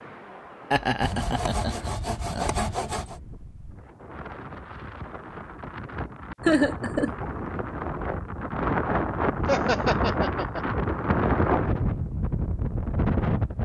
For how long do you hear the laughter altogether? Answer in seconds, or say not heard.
4 s.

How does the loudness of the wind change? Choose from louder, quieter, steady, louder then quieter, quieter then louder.
louder.